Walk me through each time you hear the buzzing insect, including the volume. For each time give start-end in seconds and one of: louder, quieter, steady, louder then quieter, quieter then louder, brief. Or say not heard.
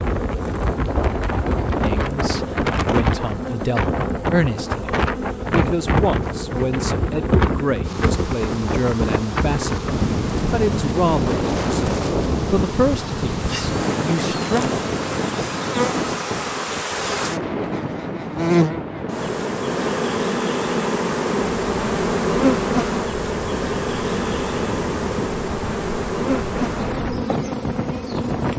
0.0-28.5 louder.